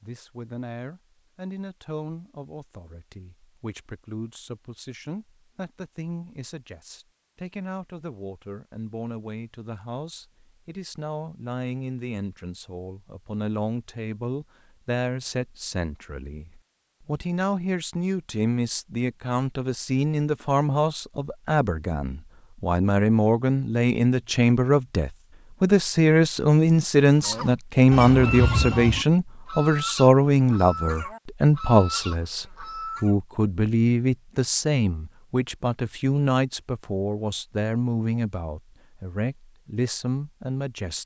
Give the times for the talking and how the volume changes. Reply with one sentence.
You can hear the talking from 0.0 to 41.0 s, getting louder then quieter.